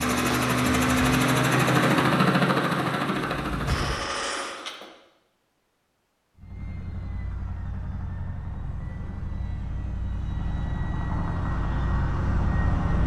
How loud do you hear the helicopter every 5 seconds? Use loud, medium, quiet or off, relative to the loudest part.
loud, quiet, medium.